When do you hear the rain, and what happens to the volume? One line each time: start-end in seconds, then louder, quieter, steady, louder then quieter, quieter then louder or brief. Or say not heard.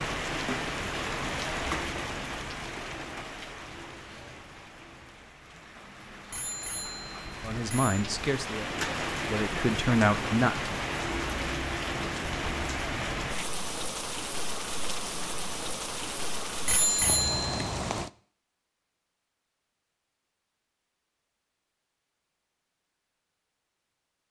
0.0-18.1 quieter then louder.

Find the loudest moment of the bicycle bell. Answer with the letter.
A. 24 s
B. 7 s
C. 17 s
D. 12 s
C.